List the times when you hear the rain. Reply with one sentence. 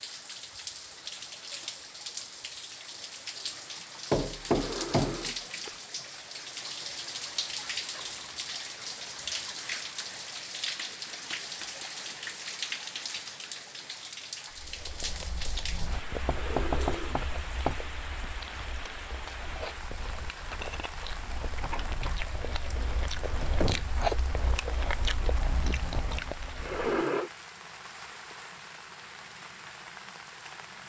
You can hear the rain from 0.0 to 30.8 s.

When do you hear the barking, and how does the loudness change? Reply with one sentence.
The barking can't be heard in this clip.